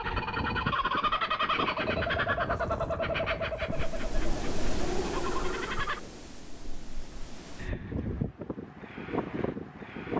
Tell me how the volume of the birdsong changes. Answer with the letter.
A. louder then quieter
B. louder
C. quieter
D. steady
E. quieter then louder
C.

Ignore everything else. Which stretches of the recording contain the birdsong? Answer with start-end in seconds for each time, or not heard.
0.0-6.0.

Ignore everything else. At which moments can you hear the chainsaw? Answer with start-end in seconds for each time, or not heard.
not heard.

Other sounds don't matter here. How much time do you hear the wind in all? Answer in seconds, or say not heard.
10 s.